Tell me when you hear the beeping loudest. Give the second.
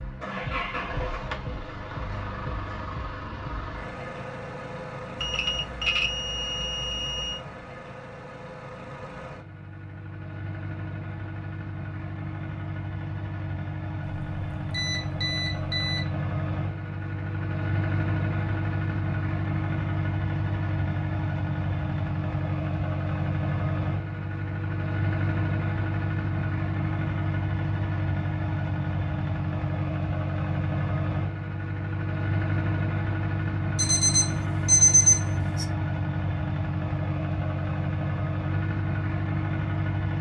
35 s.